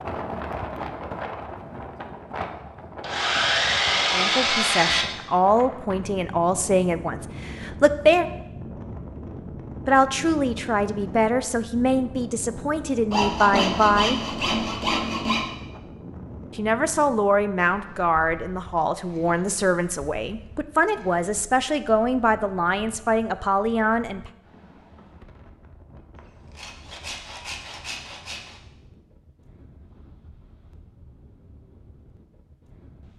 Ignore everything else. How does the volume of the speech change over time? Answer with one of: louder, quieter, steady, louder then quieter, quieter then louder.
steady.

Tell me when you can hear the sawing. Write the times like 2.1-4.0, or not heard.
3.0-5.0, 13.1-15.4, 26.1-28.6.